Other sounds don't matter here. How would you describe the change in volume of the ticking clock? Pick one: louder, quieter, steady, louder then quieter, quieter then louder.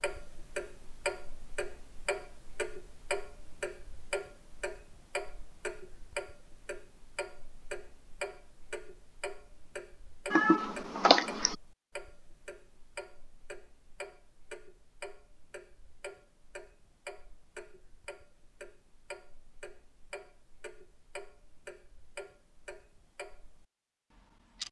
quieter.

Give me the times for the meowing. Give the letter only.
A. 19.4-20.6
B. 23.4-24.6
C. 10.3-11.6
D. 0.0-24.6
C.